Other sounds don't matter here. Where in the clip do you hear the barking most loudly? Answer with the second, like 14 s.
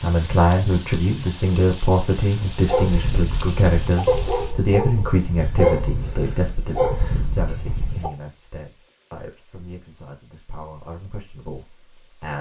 6 s.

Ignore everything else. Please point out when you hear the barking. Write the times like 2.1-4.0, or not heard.
2.5-8.1.